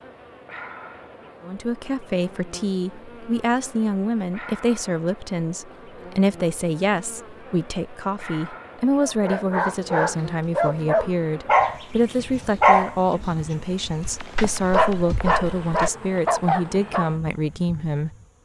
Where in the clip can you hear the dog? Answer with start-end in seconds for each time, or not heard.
9.0-17.1.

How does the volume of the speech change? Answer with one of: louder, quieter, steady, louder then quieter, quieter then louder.
steady.